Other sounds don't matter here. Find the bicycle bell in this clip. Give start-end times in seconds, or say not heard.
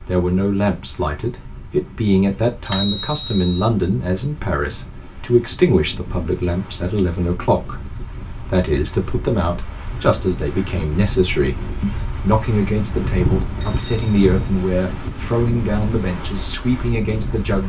2.6-3.6, 12.9-14.7.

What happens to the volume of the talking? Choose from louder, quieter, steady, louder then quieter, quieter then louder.
steady.